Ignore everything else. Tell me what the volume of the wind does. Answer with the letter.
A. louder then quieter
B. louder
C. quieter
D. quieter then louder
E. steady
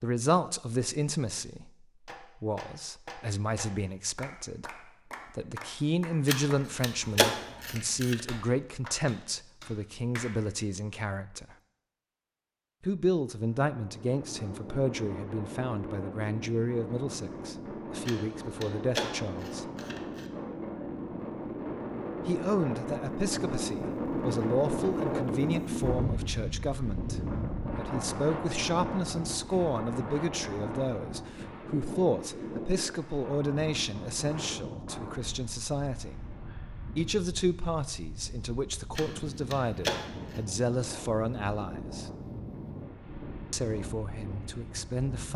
A.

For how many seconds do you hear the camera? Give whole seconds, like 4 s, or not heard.
6 s.